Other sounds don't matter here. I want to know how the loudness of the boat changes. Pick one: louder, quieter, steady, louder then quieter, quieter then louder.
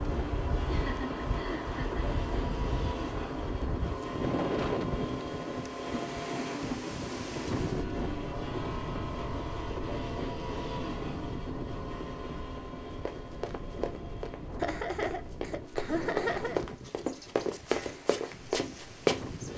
quieter.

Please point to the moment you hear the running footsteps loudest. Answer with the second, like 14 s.
19 s.